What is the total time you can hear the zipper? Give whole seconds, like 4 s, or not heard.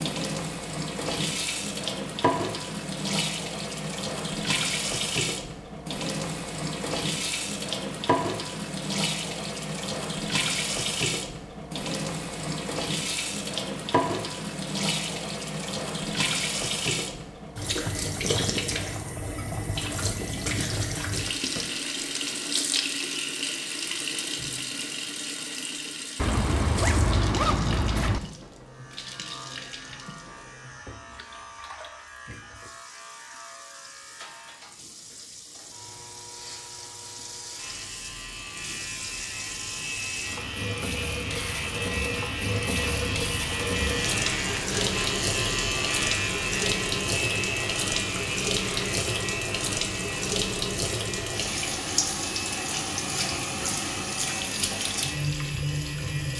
2 s.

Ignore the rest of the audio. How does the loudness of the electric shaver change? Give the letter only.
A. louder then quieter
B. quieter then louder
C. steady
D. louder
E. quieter
A.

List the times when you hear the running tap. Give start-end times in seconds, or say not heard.
0.0-56.3.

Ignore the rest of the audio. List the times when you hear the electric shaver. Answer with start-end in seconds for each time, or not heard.
28.6-56.3.